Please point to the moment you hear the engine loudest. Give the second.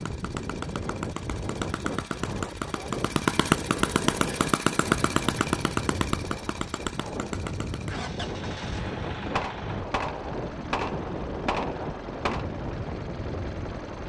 4 s.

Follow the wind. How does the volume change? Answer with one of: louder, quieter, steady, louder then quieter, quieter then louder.
steady.